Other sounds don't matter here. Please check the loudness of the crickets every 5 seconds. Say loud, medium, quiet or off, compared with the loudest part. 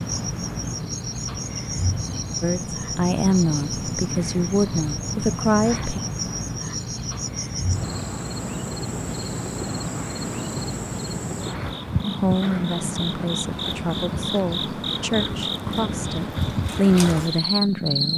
medium, medium, loud, loud.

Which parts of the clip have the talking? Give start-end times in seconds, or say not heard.
2.4-6.0, 12.1-18.1.